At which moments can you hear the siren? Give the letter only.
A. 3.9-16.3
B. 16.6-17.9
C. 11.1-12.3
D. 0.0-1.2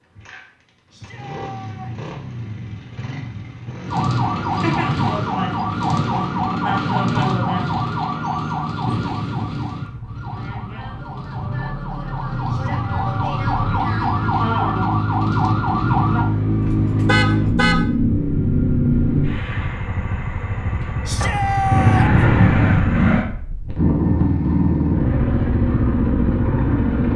A.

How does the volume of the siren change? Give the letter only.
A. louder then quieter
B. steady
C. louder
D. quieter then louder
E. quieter
D.